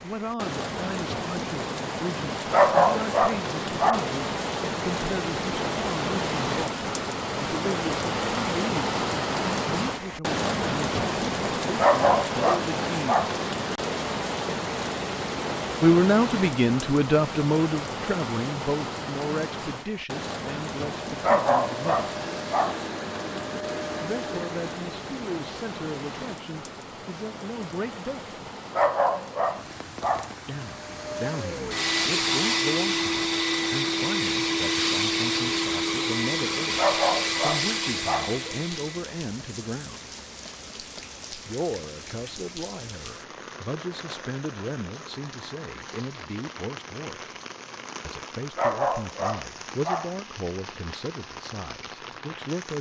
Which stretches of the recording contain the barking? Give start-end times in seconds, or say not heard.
2.5-4.0, 11.8-13.3, 21.2-22.8, 28.8-30.3, 36.8-38.4, 48.5-50.1.